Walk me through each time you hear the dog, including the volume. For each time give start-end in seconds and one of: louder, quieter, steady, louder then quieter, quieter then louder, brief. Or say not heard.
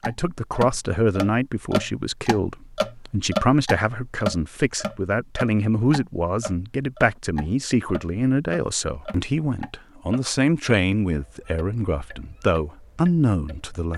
not heard.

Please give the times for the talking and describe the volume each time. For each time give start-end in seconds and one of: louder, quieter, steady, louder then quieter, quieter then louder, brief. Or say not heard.
0.0-13.9 steady.